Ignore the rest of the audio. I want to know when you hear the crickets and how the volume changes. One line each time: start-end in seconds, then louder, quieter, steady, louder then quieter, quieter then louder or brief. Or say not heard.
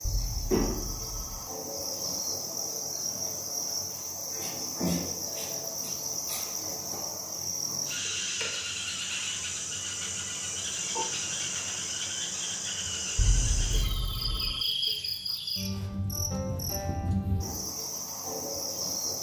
0.0-19.1 steady.